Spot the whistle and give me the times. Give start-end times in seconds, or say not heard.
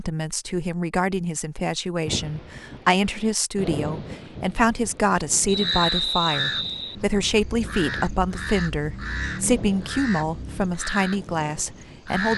5.5-7.0.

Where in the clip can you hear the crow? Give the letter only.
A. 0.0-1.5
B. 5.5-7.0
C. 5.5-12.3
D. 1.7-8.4
C.